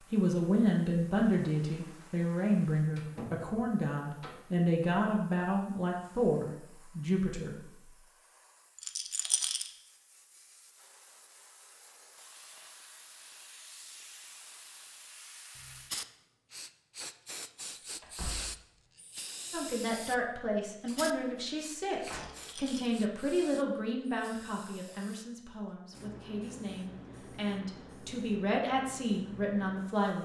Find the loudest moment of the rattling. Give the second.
9 s.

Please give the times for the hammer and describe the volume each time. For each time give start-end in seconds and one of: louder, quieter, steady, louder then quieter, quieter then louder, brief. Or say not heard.
not heard.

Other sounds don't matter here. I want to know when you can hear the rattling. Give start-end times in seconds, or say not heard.
8.8-9.7, 22.1-22.9.